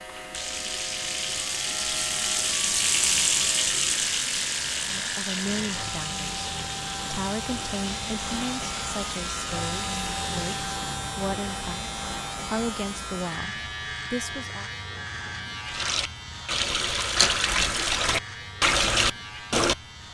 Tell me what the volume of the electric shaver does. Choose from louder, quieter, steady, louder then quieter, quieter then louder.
louder then quieter.